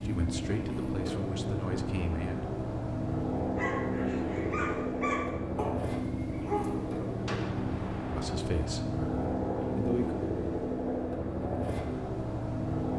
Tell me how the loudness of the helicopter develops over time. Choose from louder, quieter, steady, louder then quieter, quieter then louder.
steady.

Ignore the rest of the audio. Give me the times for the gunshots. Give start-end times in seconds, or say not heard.
7.2-8.5.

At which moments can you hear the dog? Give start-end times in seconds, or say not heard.
3.5-7.0.